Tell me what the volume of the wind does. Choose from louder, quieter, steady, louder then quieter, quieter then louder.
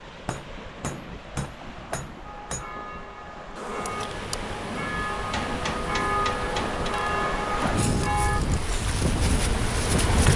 louder.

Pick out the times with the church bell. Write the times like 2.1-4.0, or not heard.
2.2-8.4.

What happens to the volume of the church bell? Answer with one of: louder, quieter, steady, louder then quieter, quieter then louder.
louder.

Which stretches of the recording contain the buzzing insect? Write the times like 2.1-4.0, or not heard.
3.5-10.3.